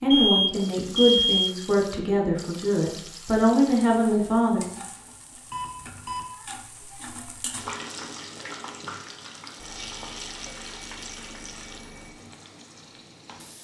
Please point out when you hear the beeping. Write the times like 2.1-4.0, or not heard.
0.1-1.6, 5.5-6.2, 9.6-12.2.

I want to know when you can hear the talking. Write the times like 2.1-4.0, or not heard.
0.0-4.6.